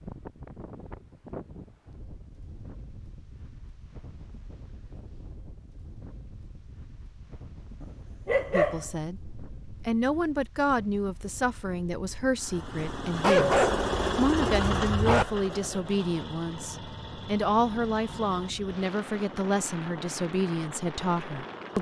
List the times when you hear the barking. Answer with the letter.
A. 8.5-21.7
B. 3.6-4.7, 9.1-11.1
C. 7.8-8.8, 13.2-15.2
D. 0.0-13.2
C.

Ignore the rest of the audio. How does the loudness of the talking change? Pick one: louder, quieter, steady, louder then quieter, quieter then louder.
steady.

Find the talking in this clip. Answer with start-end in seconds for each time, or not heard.
8.5-21.7.